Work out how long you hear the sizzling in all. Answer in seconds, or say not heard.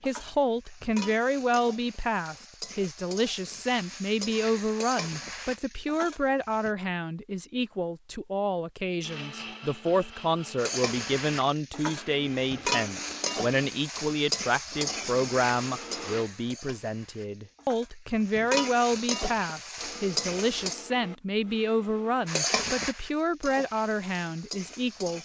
20 s.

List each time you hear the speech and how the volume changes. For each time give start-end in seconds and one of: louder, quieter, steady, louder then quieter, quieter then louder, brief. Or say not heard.
0.1-25.2 steady.